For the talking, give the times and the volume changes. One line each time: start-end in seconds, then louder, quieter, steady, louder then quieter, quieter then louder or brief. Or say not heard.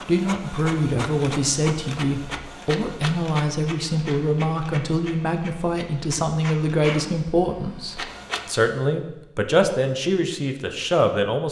0.1-11.4 steady.